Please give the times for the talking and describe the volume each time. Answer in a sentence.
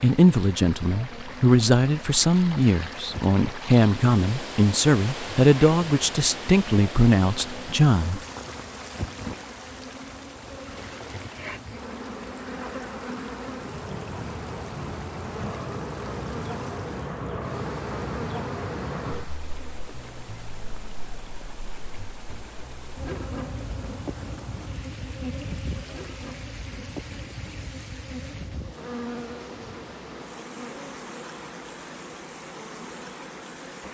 The talking can be heard from 0.0 to 8.2 s, at a steady volume.